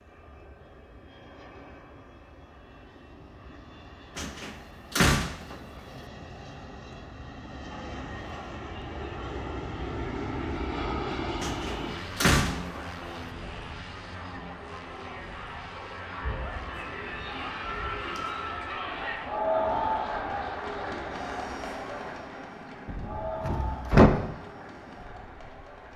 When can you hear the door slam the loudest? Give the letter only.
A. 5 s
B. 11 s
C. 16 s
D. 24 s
D.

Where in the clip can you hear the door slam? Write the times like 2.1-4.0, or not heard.
4.2-5.5, 11.4-12.8, 22.9-24.1.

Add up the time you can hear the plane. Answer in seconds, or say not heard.
26 s.